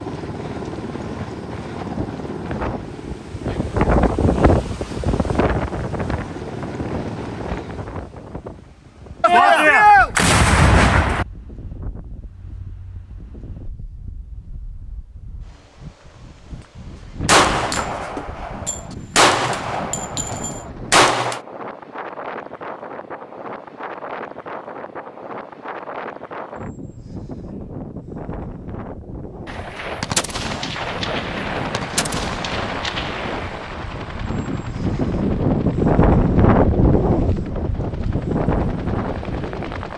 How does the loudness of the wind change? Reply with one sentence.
The loudness of the wind goes down, then up.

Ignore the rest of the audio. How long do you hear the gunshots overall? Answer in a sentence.
You can hear the gunshots for 10 seconds altogether.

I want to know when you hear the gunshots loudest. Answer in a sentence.
The loudest moment of the gunshots is at 10 seconds.